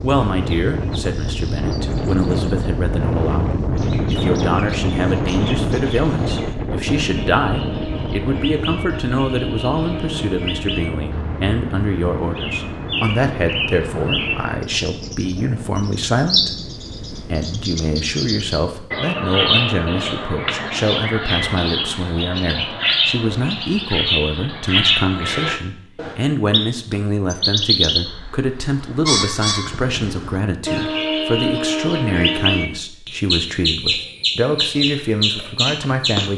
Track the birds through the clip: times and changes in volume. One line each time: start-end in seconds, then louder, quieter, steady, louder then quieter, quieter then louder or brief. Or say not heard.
0.0-36.3 louder.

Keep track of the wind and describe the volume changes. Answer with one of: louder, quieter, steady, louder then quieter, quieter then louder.
quieter.